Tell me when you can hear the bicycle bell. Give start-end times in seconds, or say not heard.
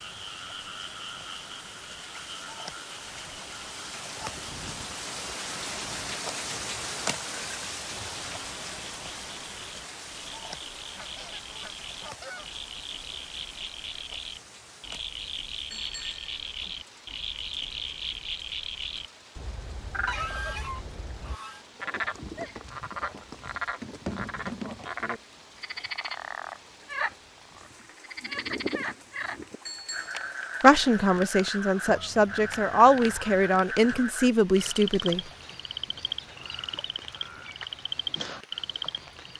15.7-16.7, 29.6-30.3.